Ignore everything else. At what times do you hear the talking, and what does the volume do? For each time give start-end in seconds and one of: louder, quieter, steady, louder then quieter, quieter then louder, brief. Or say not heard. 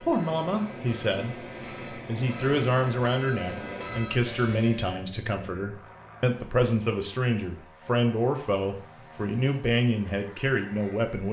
0.0-11.2 steady.